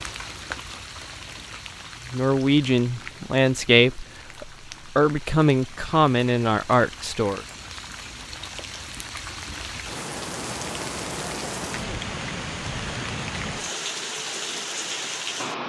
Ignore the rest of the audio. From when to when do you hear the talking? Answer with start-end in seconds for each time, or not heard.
2.1-7.5.